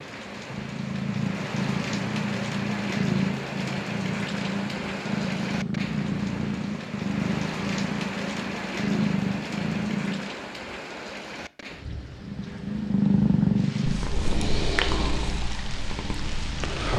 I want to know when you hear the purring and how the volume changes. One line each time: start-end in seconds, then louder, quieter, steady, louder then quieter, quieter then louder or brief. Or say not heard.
0.0-10.3 steady
12.2-16.9 quieter.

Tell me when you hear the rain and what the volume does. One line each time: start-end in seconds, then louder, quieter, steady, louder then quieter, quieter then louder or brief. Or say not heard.
0.0-16.9 quieter.